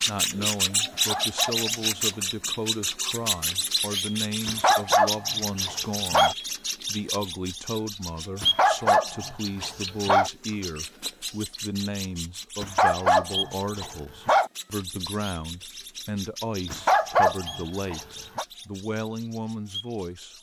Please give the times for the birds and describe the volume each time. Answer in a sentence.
The birds can be heard from 0.0 to 20.3 s, getting quieter.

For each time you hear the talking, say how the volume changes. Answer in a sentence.
You can hear the talking from 0.0 to 20.3 s, at a steady volume.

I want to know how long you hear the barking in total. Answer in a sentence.
The barking can be heard for 9 seconds in total.